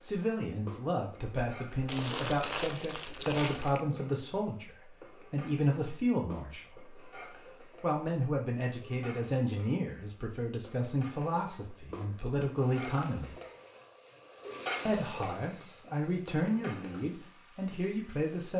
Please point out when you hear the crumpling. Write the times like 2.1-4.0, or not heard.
1.9-3.8, 12.2-13.1.